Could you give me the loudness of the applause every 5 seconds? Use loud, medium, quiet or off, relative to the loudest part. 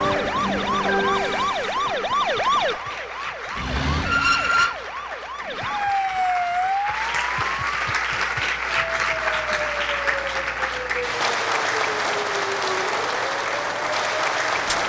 medium, loud, loud.